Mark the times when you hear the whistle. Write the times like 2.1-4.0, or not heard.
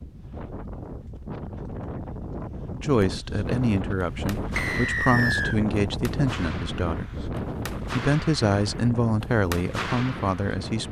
4.5-5.6.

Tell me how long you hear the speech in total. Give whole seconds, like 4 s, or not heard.
8 s.